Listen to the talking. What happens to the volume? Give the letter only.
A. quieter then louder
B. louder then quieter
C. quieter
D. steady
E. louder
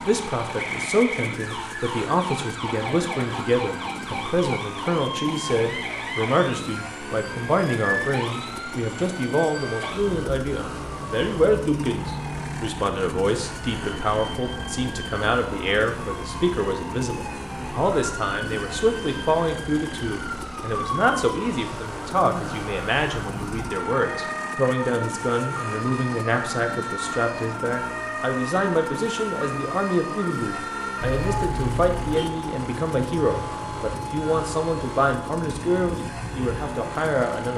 D.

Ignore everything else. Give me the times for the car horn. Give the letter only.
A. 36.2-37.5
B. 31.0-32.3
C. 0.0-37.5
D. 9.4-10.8
B.